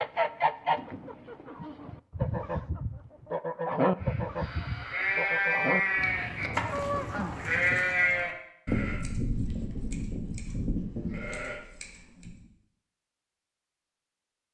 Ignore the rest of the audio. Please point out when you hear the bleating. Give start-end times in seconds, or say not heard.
4.0-12.4.